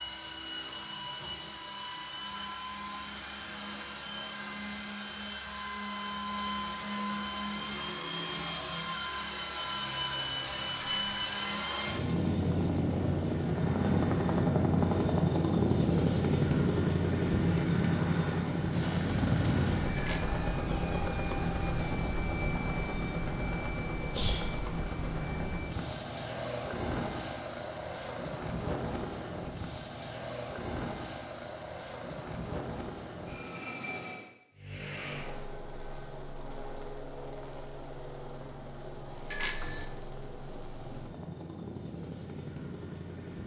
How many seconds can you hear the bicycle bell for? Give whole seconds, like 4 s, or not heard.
2 s.